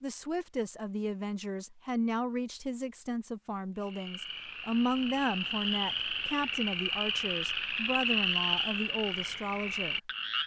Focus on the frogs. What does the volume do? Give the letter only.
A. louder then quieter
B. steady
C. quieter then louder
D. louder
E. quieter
A.